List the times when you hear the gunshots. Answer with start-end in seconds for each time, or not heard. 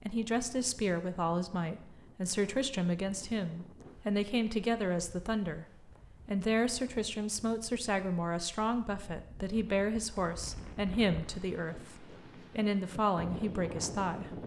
not heard.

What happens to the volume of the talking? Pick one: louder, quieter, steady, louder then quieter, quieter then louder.
steady.